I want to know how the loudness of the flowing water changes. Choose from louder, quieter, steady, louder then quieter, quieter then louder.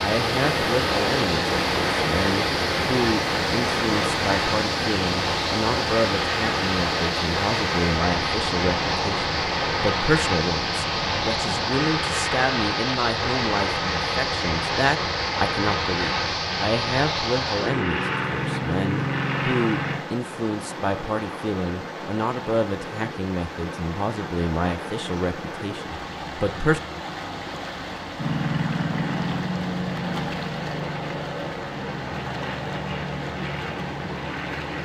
quieter.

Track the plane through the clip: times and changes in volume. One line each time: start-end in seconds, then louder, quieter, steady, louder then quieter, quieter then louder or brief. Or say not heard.
0.0-20.1 steady
28.1-34.8 quieter.